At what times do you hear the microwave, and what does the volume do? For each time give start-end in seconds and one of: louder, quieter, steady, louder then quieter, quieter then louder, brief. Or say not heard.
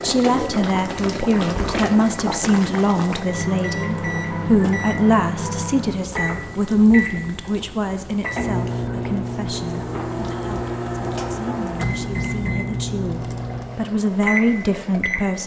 0.0-15.4 louder.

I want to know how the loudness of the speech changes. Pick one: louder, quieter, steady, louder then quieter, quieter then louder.
quieter then louder.